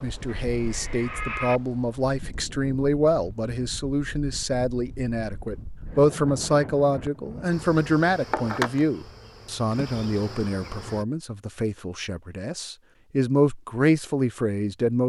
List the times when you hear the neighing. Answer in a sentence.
The neighing can be heard from 0.2 to 1.6 s.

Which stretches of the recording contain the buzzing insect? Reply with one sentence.
You can hear the buzzing insect from 7.5 to 11.1 s.